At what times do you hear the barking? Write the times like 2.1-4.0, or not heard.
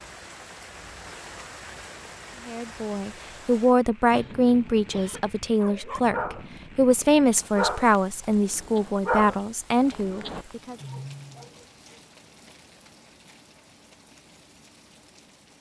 5.6-11.4.